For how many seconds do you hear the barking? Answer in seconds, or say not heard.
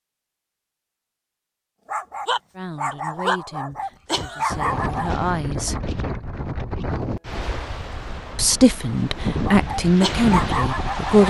5 s.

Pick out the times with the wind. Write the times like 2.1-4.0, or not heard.
4.5-11.2.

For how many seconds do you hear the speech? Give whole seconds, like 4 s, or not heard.
6 s.